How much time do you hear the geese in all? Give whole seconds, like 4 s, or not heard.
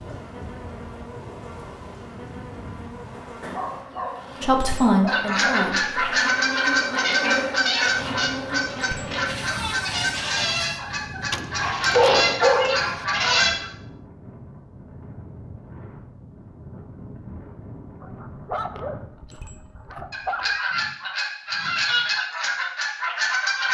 12 s.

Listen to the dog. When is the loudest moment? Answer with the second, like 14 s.
12 s.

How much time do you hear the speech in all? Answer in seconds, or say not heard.
2 s.